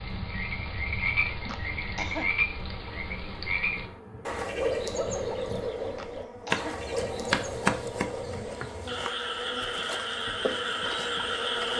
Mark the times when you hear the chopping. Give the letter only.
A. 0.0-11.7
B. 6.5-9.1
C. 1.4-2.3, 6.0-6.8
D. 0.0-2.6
B.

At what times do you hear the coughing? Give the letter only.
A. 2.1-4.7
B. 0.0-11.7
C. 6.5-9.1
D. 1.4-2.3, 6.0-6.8
D.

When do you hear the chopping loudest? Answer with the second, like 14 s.
8 s.